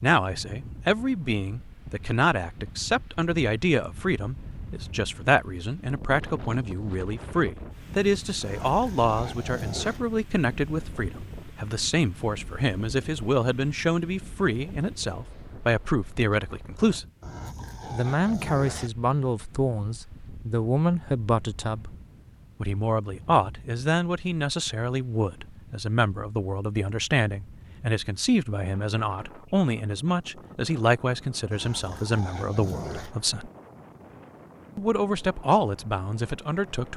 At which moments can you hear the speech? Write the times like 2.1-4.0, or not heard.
0.0-17.1, 17.9-21.9, 22.6-33.5, 34.8-36.9.